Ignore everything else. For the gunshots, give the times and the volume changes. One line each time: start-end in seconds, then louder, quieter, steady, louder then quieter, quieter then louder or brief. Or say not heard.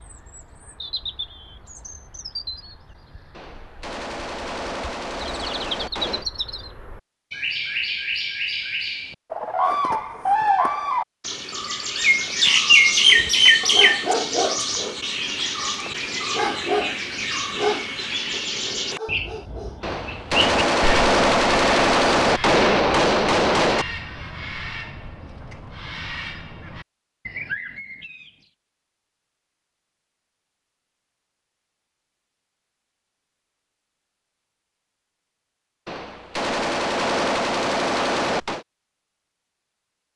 3.4-6.2 brief
19.8-23.9 steady
35.9-38.6 brief.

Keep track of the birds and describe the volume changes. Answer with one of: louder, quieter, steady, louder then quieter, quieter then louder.
louder then quieter.